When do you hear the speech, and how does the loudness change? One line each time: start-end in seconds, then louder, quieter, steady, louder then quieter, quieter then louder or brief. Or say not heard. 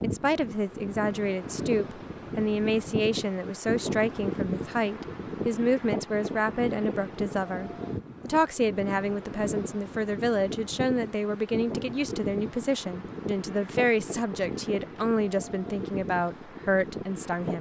0.0-17.5 steady.